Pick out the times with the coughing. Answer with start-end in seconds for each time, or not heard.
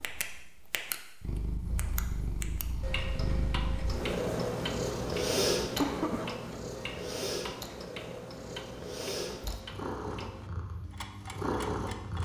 5.8-6.3.